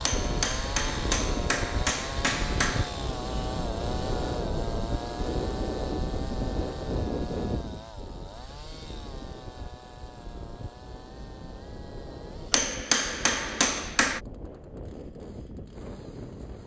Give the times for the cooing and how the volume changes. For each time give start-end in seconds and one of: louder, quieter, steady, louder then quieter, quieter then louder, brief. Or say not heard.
not heard.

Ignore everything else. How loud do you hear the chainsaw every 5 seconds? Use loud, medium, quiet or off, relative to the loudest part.
loud, medium, quiet, quiet.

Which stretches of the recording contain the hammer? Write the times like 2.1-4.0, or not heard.
0.1-2.9, 12.5-14.2.